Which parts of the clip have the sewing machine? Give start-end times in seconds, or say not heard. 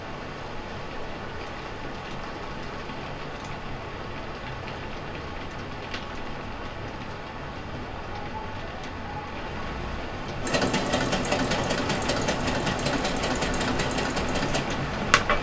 10.4-15.3.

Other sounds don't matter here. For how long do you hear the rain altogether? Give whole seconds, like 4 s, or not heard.
15 s.